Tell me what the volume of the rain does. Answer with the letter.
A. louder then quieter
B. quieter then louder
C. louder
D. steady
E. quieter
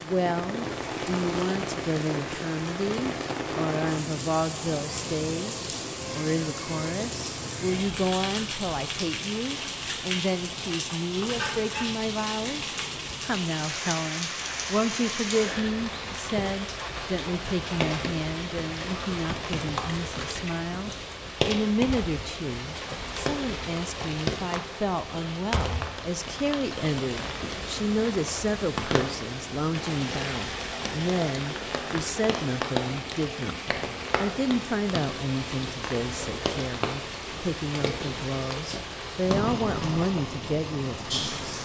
D.